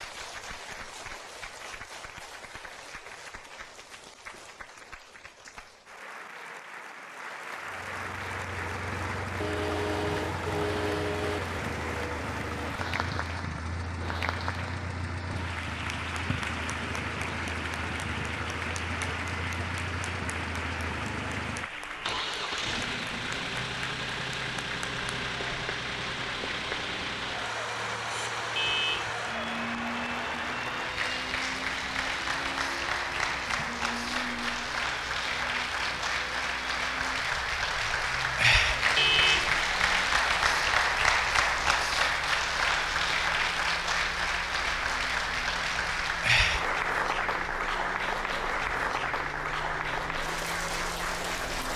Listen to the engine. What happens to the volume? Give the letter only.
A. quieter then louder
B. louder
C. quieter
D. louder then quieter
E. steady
C.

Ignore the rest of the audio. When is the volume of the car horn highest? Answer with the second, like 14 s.
39 s.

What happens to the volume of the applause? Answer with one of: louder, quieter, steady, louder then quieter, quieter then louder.
louder.